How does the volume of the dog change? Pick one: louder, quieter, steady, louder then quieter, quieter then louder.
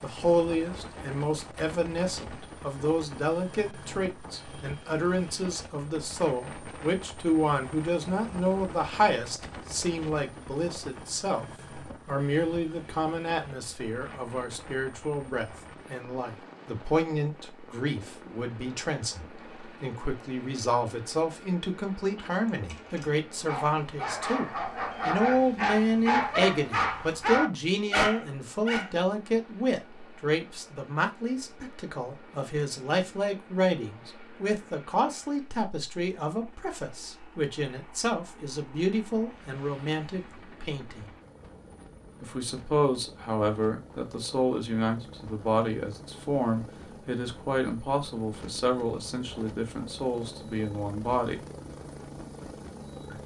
louder.